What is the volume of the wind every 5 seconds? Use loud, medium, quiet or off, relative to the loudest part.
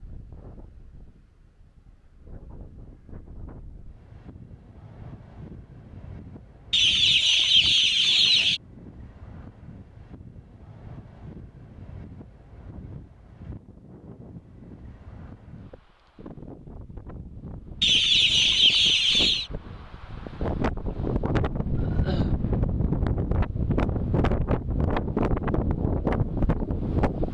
quiet, quiet, quiet, quiet, loud, loud.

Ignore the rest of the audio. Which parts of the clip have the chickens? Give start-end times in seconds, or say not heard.
6.7-8.6, 17.8-19.5.